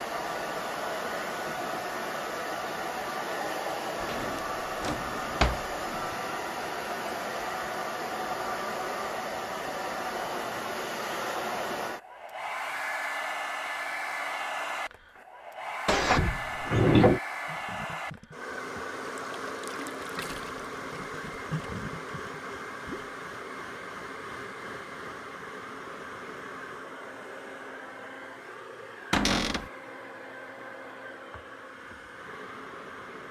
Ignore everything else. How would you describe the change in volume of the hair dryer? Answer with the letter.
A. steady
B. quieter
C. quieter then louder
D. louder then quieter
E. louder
B.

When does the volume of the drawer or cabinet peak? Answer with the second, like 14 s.
17 s.